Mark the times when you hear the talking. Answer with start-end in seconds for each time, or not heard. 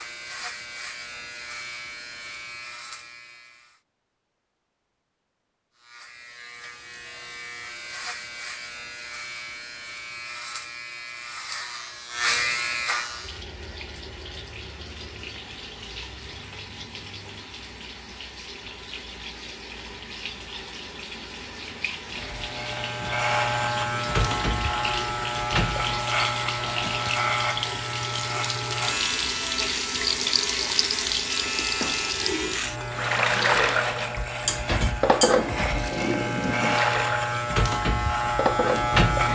not heard.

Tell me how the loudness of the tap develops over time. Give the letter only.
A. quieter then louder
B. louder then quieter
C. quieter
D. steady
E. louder
E.